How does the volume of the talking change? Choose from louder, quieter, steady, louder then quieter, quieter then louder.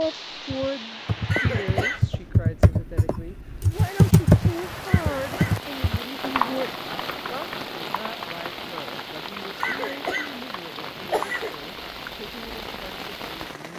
quieter.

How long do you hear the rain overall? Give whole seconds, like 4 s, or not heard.
14 s.